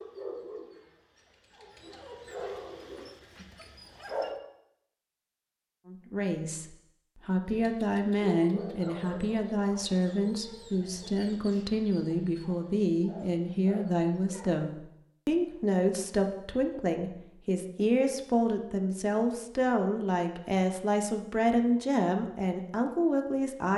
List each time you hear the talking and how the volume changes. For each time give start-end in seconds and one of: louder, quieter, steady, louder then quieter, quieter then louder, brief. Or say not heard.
5.8-23.7 steady.